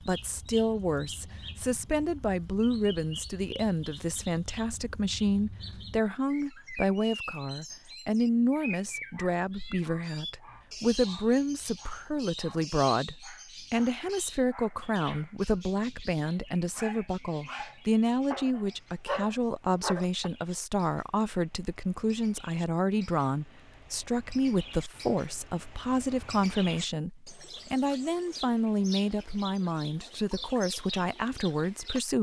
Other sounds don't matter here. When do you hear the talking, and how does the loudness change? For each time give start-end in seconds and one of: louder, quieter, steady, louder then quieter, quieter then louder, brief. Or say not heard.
0.1-32.1 steady.